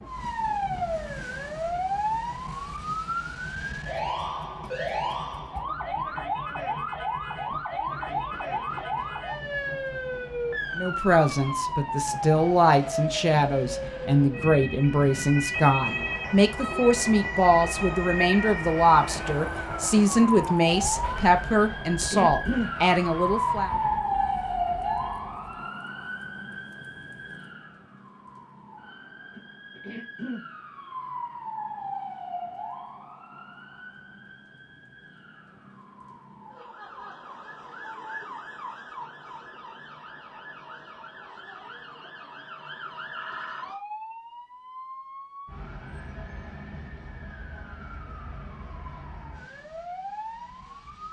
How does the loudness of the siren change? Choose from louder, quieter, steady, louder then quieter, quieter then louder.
quieter.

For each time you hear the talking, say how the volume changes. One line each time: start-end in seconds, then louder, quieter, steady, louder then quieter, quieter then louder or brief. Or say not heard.
10.8-23.7 steady.